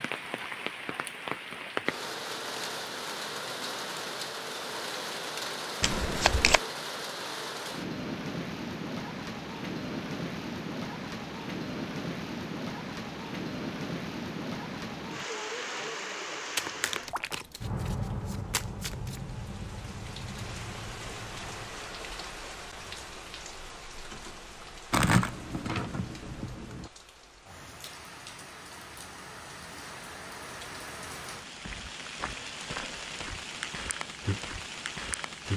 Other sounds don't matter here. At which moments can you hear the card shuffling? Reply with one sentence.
The card shuffling can be heard from 5.8 to 6.6 s, from 16.6 to 19.2 s and from 24.9 to 26.9 s.